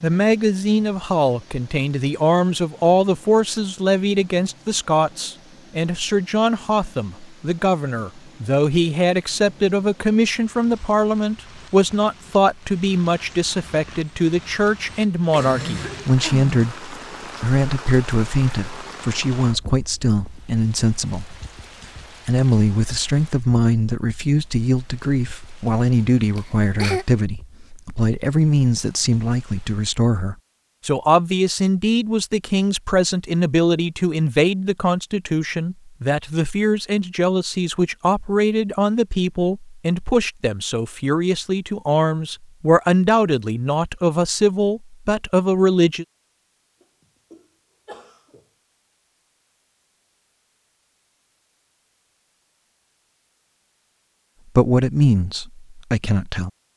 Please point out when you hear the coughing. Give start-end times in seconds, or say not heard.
15.3-16.5, 26.4-27.1, 46.8-48.4.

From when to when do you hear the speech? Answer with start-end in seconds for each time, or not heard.
0.0-21.4, 22.2-46.0, 54.5-56.5.